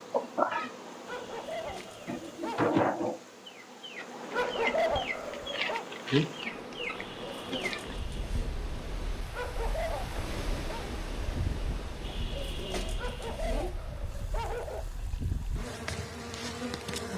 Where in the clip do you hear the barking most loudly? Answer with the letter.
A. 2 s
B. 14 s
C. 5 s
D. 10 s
C.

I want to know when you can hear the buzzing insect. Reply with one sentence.
The buzzing insect can be heard from 0.0 to 17.1 s.